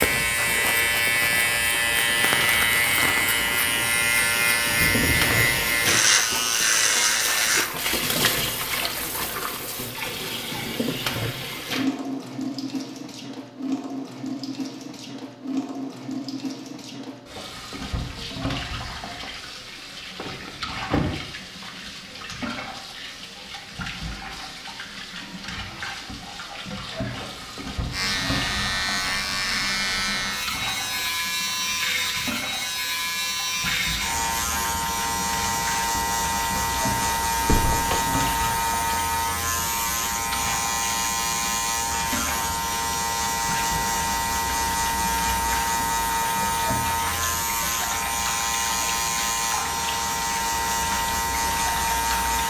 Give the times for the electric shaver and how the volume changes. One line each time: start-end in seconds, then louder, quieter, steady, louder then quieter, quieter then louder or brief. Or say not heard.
0.0-7.7 steady
27.9-52.4 steady.